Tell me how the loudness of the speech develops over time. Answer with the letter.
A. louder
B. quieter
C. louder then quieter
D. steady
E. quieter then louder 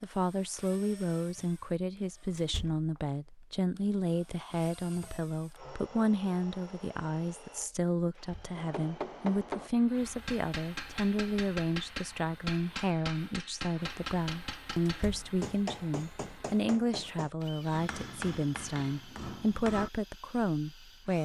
D.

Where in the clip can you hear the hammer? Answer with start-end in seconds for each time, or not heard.
8.6-19.9.